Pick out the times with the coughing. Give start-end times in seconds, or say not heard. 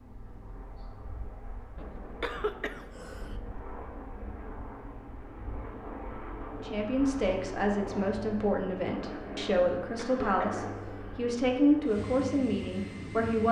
2.2-3.4, 9.9-11.1.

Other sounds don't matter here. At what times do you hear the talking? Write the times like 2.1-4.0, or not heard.
6.6-13.4.